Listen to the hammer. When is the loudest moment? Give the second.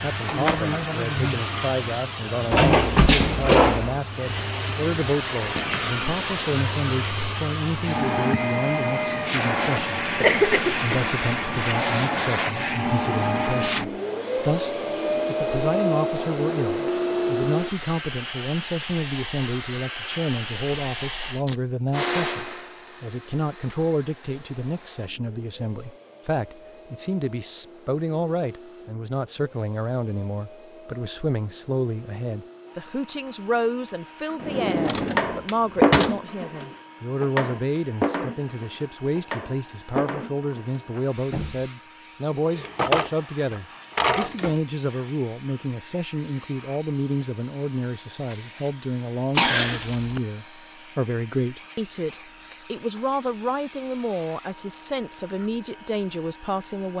36 s.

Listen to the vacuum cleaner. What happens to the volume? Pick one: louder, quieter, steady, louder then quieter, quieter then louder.
quieter.